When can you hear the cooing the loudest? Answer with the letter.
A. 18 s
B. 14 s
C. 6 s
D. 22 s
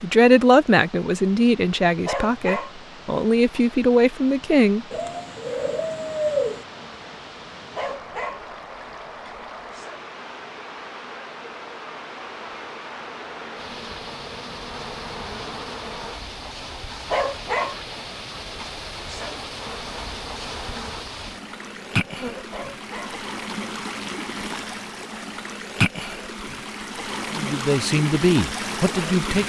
C.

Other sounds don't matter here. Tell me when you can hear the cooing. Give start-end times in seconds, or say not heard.
4.9-6.7.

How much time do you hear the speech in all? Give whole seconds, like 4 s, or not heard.
7 s.